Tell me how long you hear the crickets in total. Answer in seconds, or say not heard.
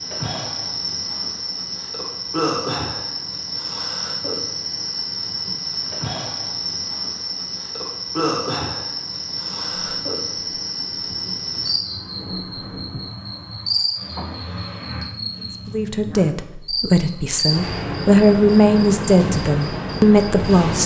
21 s.